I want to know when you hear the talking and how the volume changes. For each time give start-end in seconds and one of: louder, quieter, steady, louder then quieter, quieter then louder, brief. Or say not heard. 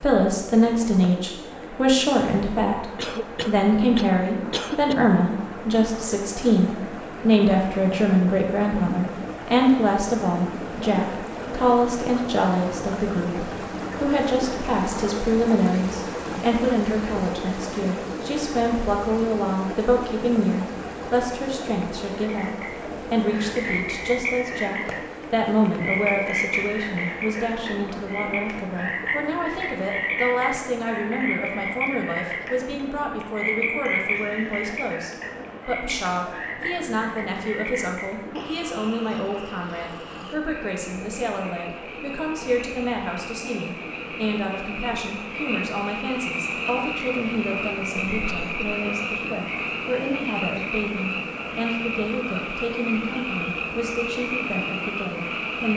0.0-55.7 quieter.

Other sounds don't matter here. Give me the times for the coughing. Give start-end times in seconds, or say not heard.
3.0-5.0, 48.1-48.7.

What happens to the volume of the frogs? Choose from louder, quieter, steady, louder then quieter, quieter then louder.
quieter then louder.